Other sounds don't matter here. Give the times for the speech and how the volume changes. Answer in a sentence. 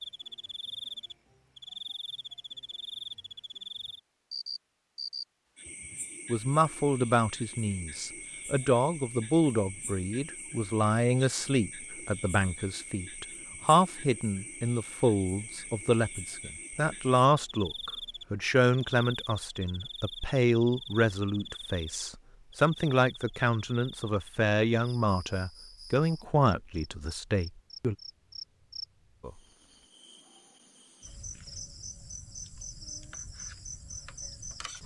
The speech can be heard from 6.2 to 27.9 s, at a steady volume.